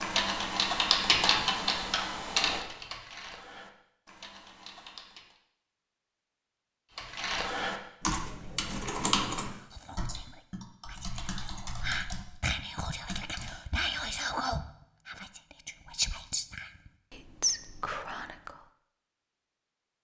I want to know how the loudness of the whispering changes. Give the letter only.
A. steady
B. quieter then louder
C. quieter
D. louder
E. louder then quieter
D.